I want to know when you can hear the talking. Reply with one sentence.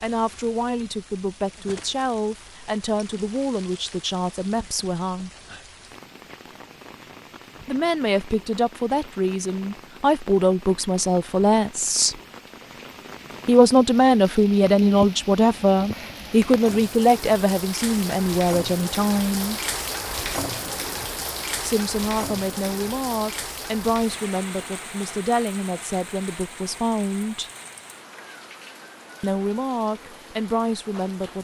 The talking can be heard from 0.0 to 5.3 s, from 7.7 to 12.2 s, from 13.4 to 19.6 s, from 21.6 to 27.5 s and from 29.2 to 31.3 s.